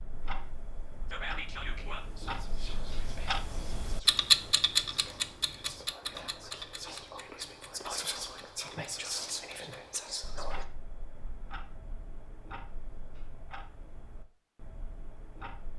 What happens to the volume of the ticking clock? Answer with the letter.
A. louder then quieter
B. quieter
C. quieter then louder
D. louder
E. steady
A.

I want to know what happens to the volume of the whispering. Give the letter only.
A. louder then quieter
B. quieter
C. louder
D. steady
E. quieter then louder
E.